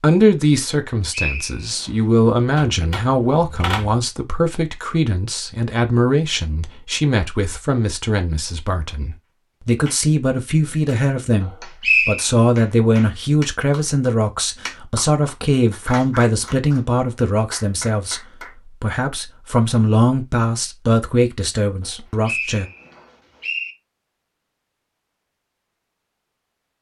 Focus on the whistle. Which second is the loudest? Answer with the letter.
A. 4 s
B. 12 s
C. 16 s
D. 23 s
B.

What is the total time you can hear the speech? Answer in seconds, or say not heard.
23 s.